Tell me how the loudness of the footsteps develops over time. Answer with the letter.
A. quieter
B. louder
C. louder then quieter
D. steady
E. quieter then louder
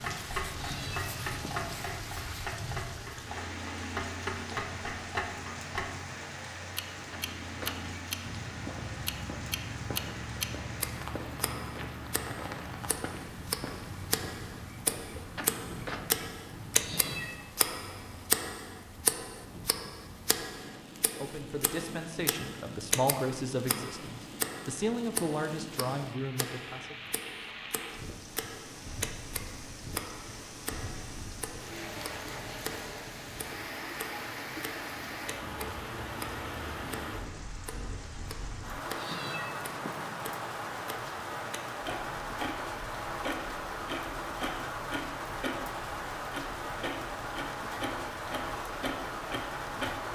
D.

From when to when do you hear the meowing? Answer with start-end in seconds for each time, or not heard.
0.6-1.7, 16.8-17.4, 39.0-40.2.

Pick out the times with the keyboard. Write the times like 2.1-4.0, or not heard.
not heard.